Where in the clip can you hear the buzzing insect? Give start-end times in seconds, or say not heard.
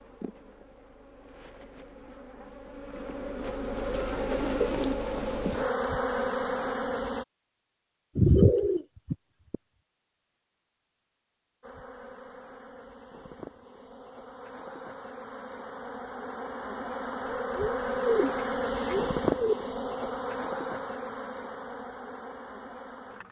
0.0-7.2, 11.6-23.2.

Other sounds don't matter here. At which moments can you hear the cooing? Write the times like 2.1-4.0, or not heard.
3.9-5.0, 8.2-9.6, 17.6-19.6.